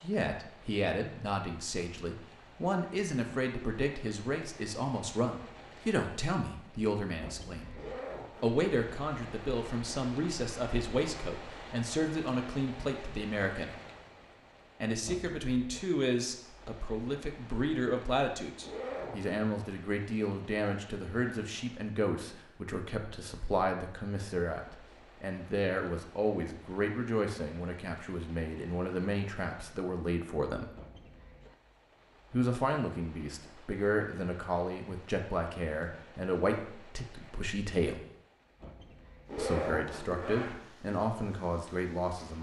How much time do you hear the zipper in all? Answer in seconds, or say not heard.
3 s.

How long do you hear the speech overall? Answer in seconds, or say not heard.
38 s.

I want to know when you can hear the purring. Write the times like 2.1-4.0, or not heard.
not heard.